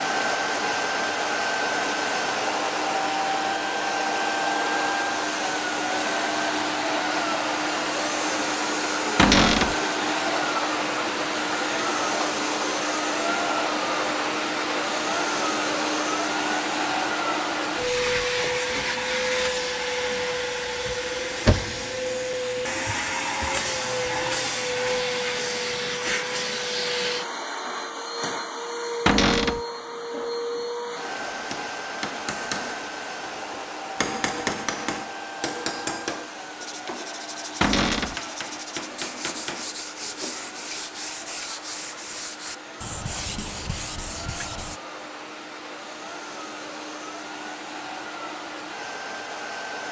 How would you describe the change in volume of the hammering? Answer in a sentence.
The loudness of the hammering goes up, then down.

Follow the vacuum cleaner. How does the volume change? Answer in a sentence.
The volume of the vacuum cleaner goes down.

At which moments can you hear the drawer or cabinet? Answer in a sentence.
The drawer or cabinet can be heard from 9.2 to 9.8 s, from 29.1 to 29.6 s and from 37.6 to 38.1 s.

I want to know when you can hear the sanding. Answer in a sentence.
The sanding can be heard from 36.5 to 44.8 s.